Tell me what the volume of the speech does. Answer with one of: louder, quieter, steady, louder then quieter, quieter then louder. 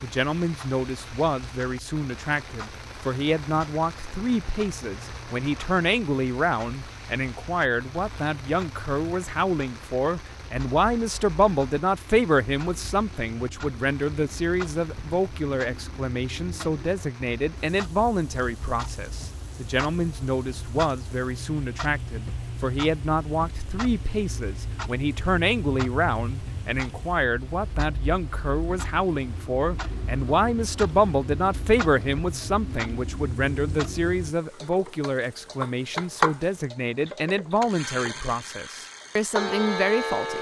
steady.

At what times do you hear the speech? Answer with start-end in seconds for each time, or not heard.
0.0-40.3.